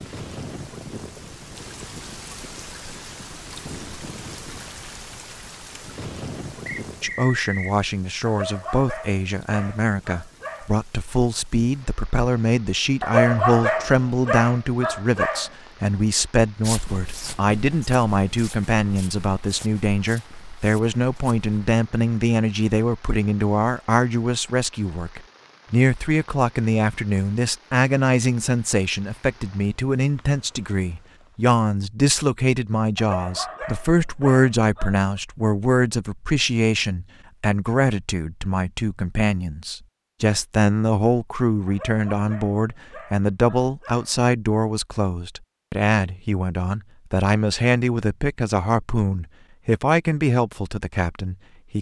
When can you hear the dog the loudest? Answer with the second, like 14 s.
13 s.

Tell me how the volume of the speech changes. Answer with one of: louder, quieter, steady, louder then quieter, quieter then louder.
steady.